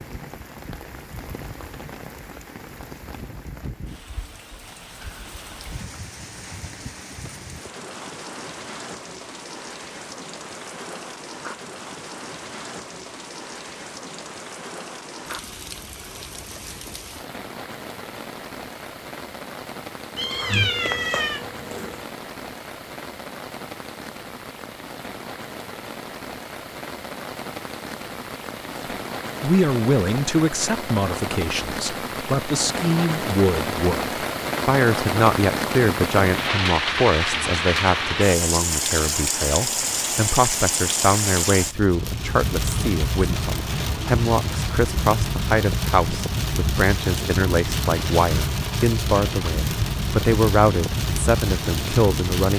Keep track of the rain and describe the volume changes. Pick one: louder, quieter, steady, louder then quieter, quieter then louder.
louder.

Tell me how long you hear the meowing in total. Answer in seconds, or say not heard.
2 s.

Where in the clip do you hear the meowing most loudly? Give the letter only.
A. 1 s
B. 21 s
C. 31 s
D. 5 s
B.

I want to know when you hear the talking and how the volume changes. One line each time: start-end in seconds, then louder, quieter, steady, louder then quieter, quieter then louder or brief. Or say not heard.
29.4-52.5 steady.